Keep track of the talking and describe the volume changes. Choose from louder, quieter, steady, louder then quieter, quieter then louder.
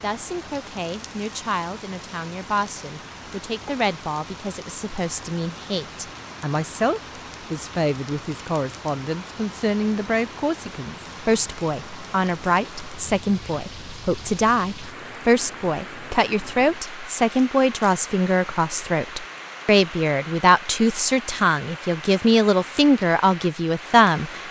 louder.